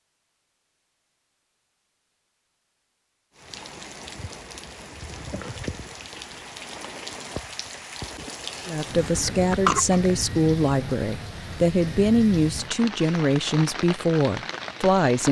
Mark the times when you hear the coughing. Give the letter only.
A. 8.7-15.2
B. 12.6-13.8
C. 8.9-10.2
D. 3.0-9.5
C.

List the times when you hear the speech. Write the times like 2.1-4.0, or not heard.
8.7-15.2.